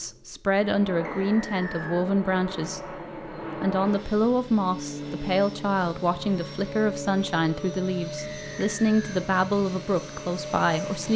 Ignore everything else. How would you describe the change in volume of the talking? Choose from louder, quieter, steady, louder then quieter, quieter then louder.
steady.